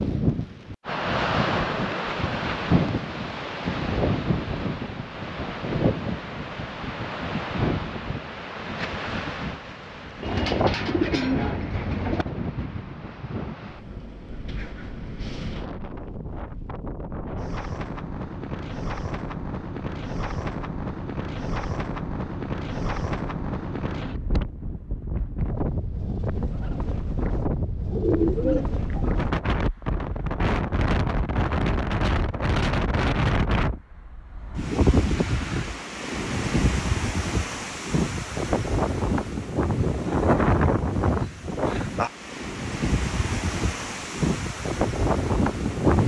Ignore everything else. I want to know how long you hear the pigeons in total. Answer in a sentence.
The pigeons can be heard for 3 seconds in total.